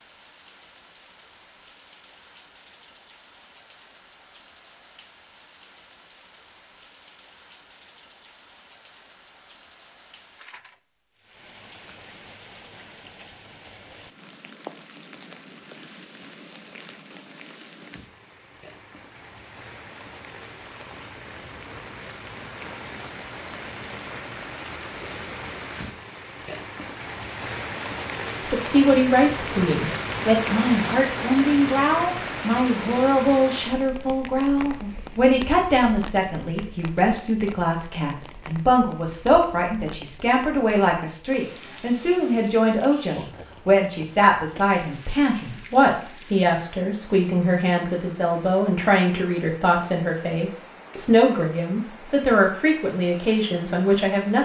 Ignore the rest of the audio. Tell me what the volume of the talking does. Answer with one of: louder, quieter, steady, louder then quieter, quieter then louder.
steady.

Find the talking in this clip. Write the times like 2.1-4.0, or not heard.
28.4-54.4.